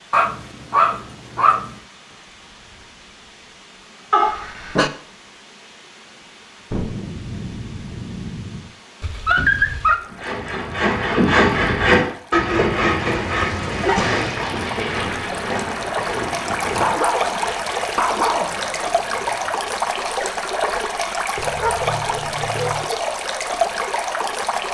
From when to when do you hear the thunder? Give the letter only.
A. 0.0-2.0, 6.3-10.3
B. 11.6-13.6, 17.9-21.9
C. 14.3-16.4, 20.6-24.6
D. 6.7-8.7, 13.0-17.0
D.